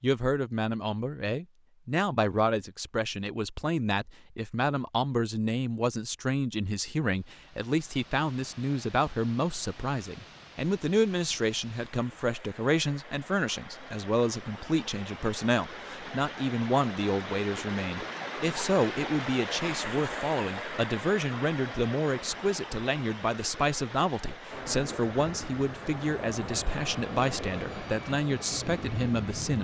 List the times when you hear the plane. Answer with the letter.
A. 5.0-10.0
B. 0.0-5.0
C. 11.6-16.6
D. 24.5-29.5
D.